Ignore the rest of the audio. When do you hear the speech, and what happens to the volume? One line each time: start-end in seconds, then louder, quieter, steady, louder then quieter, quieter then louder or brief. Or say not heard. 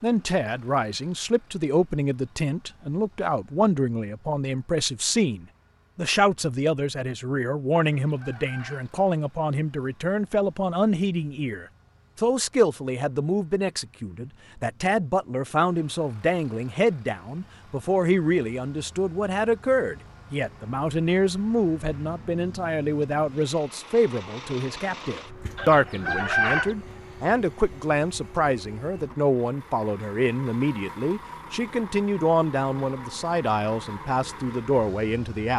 0.0-35.5 steady.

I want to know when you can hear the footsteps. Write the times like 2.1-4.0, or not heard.
not heard.